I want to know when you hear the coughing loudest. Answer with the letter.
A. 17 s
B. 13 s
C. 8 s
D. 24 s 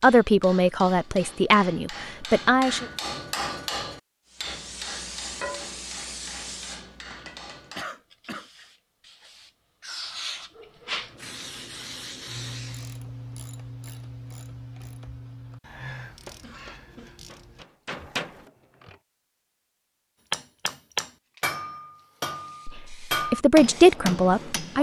C.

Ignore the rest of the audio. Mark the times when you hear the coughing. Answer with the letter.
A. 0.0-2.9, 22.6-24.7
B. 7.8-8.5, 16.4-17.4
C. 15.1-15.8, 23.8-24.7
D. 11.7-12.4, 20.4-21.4
B.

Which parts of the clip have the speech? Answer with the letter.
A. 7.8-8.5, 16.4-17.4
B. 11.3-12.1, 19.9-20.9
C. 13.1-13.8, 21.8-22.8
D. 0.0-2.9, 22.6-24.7
D.